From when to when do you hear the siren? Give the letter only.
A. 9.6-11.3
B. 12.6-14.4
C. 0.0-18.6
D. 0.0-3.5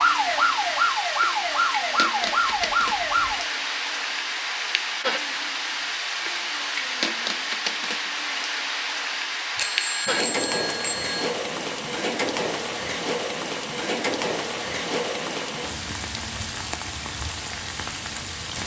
D.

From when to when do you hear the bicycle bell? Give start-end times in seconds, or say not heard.
9.6-11.3.